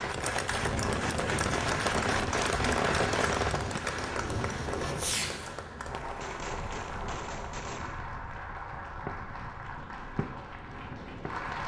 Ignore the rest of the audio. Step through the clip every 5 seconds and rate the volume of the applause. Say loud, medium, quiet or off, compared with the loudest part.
loud, medium, medium.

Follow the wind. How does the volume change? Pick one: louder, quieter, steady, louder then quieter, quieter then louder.
quieter.